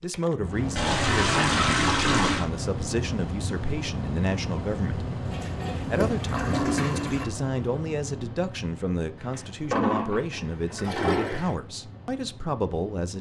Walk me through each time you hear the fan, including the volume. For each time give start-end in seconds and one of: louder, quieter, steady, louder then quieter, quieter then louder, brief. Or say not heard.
0.0-13.1 quieter.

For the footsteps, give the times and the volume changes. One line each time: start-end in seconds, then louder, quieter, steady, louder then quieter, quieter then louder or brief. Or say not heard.
not heard.